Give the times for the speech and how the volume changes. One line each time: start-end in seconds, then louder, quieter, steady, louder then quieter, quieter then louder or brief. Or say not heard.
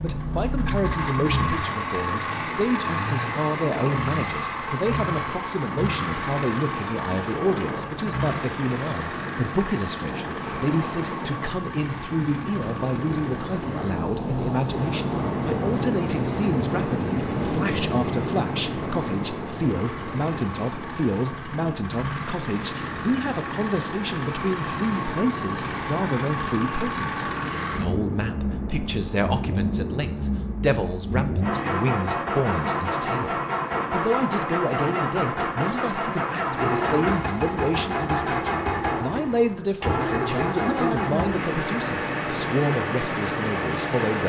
0.0-44.2 steady.